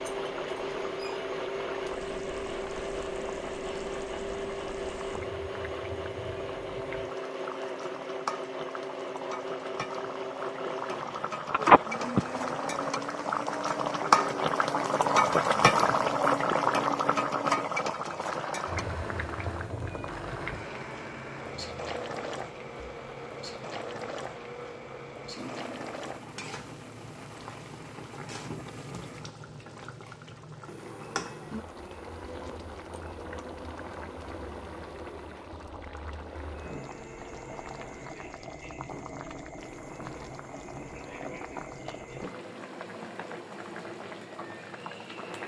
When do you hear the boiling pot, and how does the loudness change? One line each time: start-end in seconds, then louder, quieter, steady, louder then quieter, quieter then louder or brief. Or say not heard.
0.0-45.4 louder then quieter.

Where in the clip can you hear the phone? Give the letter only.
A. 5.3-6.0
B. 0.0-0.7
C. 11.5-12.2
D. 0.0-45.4
C.